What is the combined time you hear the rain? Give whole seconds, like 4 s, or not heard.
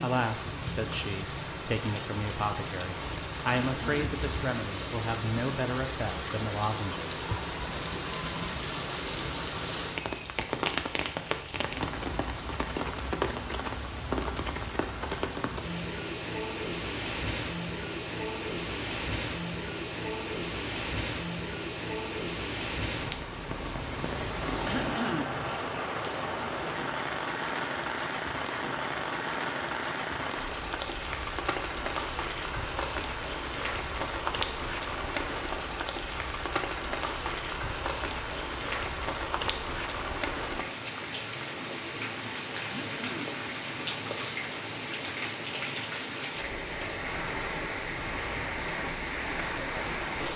50 s.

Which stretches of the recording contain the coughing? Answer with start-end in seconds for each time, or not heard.
3.8-4.2, 24.6-25.4, 42.6-43.4.